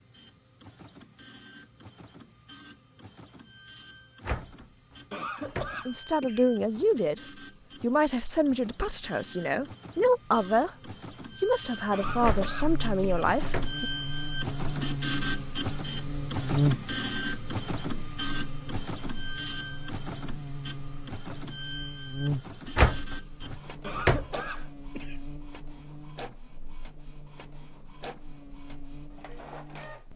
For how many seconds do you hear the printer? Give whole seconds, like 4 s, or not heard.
30 s.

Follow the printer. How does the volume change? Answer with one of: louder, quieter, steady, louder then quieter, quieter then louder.
louder then quieter.